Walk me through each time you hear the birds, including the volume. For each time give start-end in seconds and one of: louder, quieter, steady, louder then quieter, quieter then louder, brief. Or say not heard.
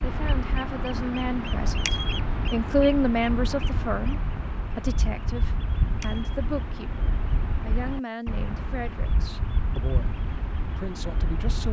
0.0-11.6 steady.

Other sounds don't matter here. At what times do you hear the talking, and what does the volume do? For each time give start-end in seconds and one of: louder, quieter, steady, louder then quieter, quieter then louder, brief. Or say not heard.
0.0-11.6 louder then quieter.